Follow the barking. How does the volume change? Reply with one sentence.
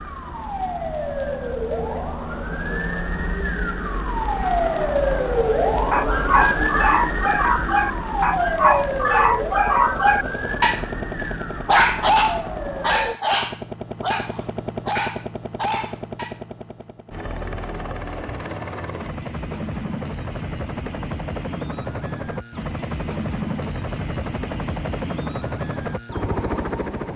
The loudness of the barking goes down.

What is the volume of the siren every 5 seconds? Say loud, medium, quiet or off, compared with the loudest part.
loud, loud, medium, off, off, off.